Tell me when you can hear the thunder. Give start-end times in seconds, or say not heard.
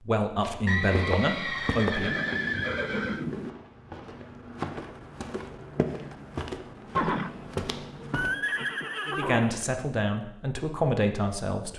2.0-3.5.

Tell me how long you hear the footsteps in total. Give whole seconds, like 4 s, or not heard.
8 s.